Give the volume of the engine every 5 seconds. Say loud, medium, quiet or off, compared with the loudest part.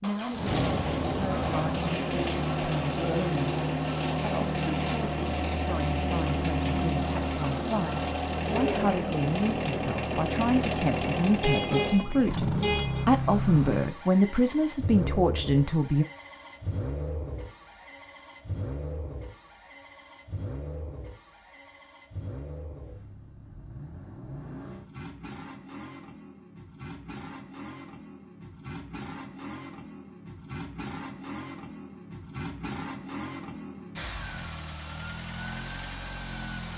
loud, loud, loud, medium, quiet, quiet, medium, medium.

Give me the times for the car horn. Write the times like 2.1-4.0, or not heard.
11.4-13.1.